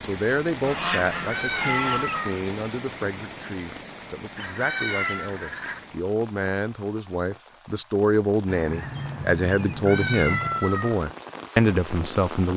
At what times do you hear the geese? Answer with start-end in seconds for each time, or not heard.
0.6-2.3, 4.3-5.8, 8.4-10.7.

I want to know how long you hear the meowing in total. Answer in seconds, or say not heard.
3 s.